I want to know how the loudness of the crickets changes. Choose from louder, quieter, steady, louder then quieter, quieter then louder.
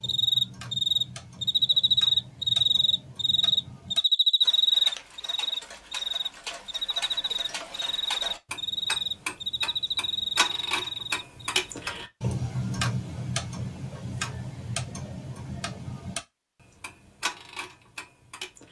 quieter.